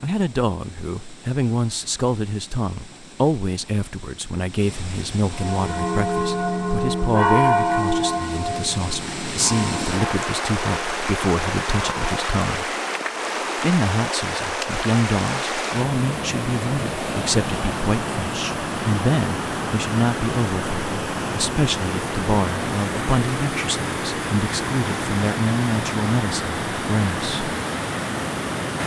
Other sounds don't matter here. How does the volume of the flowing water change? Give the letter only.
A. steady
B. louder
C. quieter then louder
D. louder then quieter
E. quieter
B.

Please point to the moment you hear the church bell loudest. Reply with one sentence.
The volume of the church bell peaks at 7 seconds.